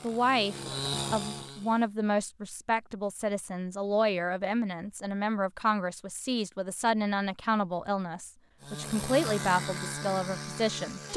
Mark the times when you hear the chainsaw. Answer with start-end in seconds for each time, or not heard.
0.0-1.9, 8.6-11.1.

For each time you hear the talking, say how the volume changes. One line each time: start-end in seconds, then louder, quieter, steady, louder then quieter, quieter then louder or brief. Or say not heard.
0.0-11.1 steady.